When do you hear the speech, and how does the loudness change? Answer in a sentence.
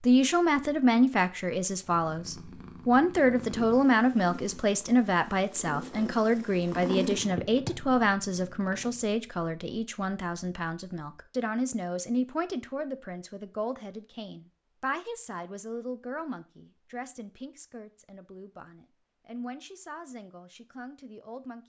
You can hear the speech from 0.0 to 21.6 s, getting quieter.